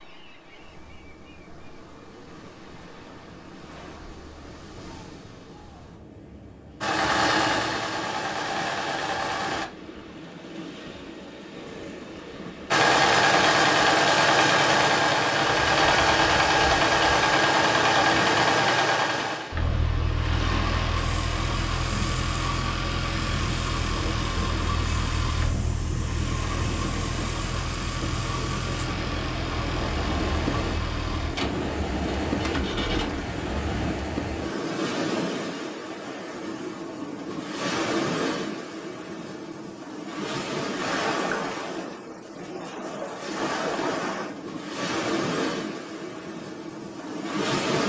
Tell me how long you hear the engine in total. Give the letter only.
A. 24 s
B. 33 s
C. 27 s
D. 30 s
A.